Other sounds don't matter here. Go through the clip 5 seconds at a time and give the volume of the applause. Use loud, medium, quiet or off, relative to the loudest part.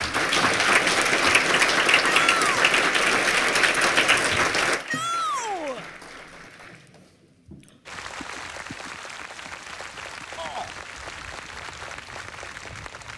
loud, quiet, quiet.